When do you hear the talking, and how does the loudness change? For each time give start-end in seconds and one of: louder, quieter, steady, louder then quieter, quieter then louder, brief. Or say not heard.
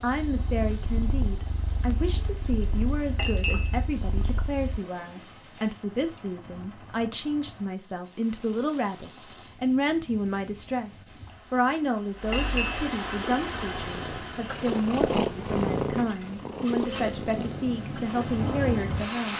0.0-19.3 steady.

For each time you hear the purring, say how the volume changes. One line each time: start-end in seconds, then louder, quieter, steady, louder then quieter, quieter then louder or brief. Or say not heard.
0.0-4.8 steady
13.2-19.3 louder then quieter.